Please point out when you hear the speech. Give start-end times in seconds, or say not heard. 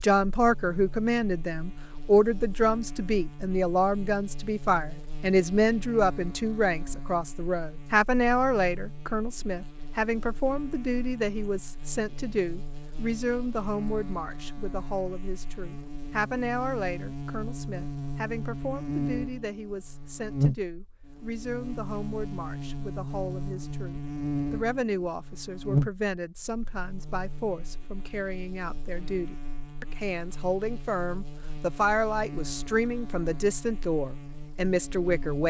0.0-35.4.